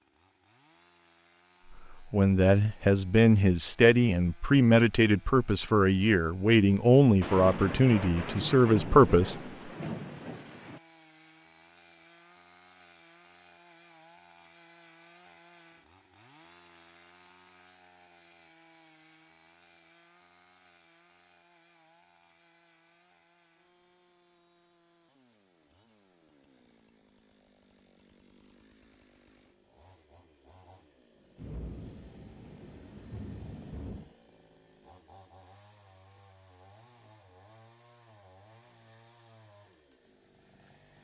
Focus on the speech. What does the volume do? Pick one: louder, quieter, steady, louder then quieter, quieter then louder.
steady.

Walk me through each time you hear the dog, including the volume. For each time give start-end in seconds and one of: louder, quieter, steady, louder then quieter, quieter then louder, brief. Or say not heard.
not heard.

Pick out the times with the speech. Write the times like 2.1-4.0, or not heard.
1.9-9.3.